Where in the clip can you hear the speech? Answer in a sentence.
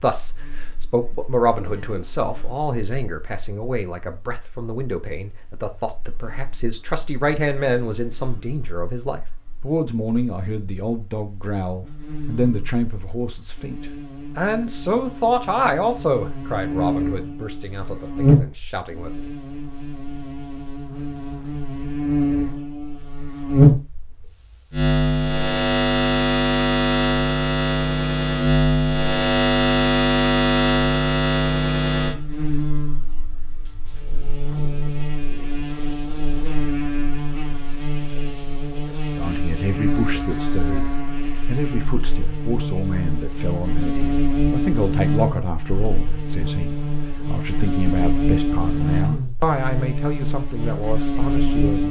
You can hear the speech from 0.0 to 19.1 s and from 39.1 to 51.8 s.